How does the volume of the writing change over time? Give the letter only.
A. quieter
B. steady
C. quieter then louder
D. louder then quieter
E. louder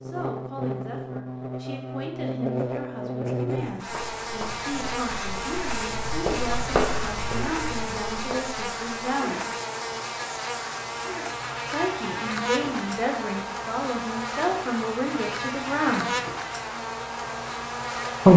D.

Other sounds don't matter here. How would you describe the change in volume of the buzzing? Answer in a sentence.
The volume of the buzzing stays about the same.